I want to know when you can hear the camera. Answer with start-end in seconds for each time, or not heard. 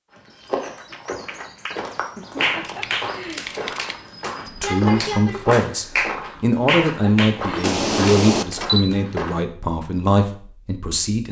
2.6-4.0, 7.6-8.8.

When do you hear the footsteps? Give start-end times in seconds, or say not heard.
0.1-9.4.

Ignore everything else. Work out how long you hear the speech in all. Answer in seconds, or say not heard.
7 s.